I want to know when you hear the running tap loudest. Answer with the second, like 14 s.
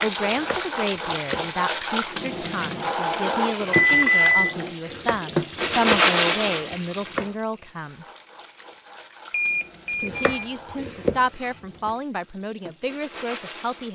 6 s.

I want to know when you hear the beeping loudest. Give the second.
4 s.